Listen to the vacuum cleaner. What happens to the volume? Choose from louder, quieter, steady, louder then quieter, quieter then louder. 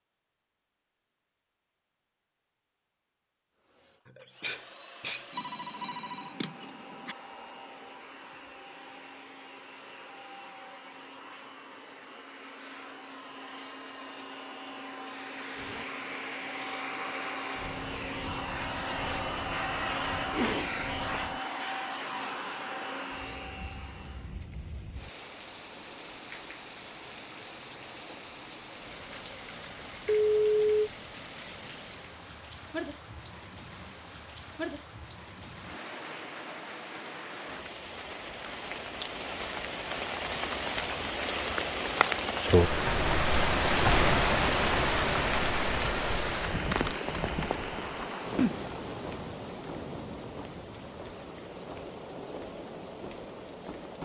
louder.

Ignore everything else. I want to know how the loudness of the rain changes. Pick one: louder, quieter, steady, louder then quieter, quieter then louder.
louder then quieter.